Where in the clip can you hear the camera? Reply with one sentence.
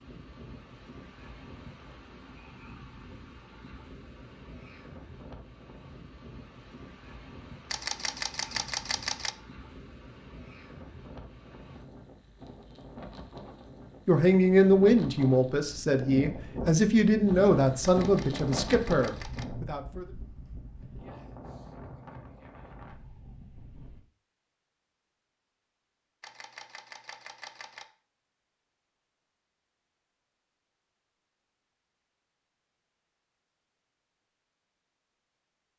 The camera can be heard from 7.7 to 9.3 s, from 17.8 to 19.4 s and from 26.2 to 27.9 s.